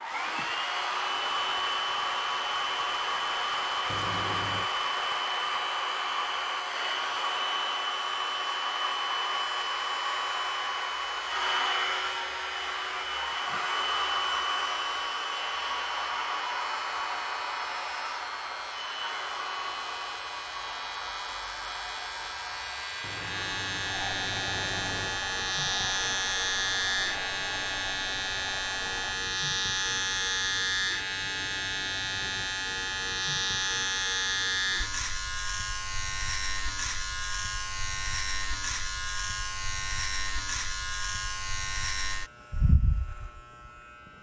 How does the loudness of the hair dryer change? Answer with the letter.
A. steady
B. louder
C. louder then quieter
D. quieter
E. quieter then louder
D.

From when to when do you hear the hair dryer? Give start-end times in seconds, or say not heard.
0.0-29.1.